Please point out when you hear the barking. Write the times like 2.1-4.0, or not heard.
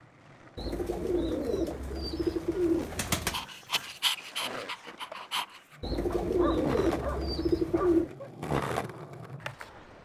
3.3-8.3.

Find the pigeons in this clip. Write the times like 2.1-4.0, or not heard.
0.6-3.4, 5.8-8.1.